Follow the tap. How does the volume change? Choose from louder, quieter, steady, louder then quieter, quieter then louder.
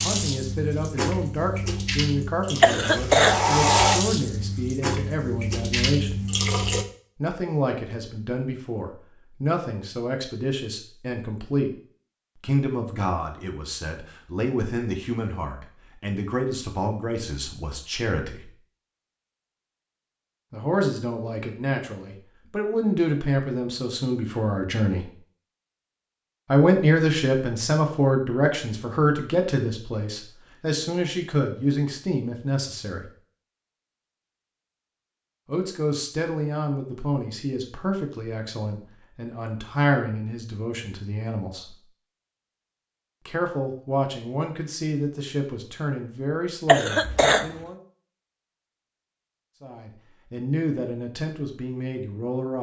louder then quieter.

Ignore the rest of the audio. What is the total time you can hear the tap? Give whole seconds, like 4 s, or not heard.
7 s.